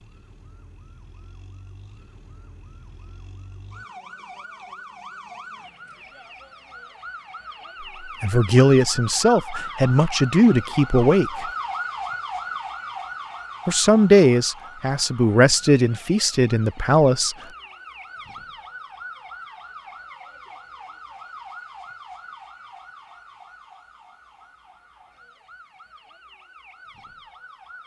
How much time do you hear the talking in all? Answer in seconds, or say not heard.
7 s.